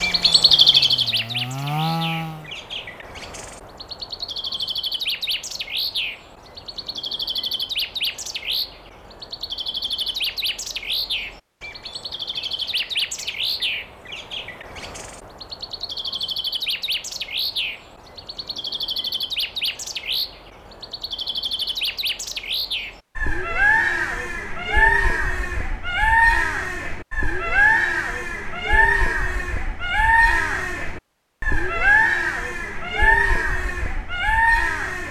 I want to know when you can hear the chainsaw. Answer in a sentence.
You can hear the chainsaw from 0.0 to 2.5 s.